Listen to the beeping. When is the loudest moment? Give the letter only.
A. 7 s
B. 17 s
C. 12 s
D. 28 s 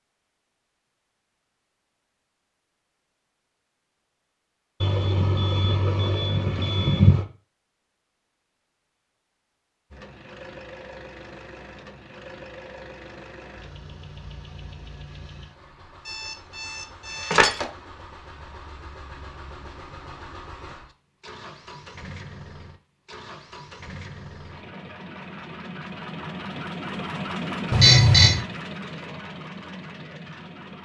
D.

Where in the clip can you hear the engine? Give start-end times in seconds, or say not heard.
9.9-30.7.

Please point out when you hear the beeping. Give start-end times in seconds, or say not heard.
4.8-7.2, 16.1-17.6, 27.7-28.4.